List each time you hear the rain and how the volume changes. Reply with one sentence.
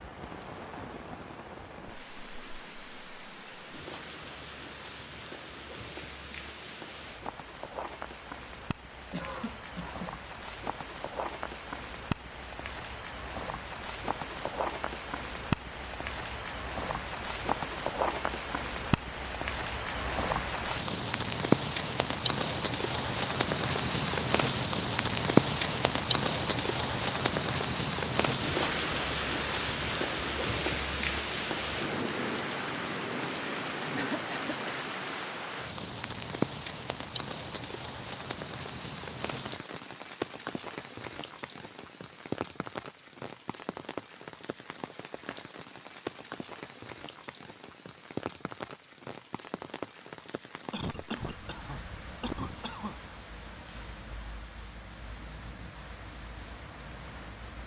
You can hear the rain from 0.0 to 57.6 s, getting louder then quieter.